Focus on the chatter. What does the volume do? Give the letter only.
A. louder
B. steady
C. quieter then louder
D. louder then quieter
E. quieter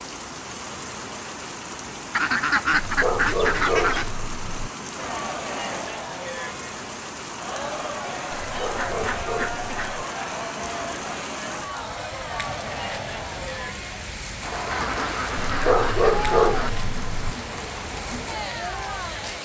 B.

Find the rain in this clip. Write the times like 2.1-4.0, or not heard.
0.0-19.4.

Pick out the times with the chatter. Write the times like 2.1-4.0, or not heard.
5.0-19.4.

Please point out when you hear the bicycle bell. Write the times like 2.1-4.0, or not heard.
not heard.